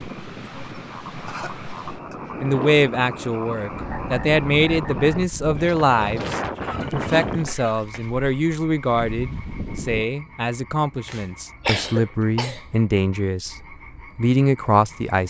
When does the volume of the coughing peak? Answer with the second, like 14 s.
12 s.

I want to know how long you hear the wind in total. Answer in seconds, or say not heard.
10 s.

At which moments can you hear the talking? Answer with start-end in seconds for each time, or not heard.
2.4-15.2.